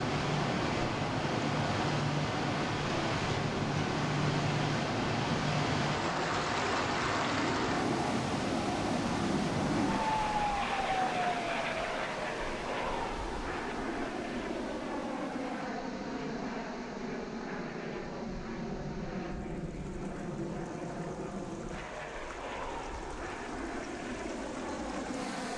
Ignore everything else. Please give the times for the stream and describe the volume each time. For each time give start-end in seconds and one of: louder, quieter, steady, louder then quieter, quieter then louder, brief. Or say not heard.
0.0-25.5 quieter.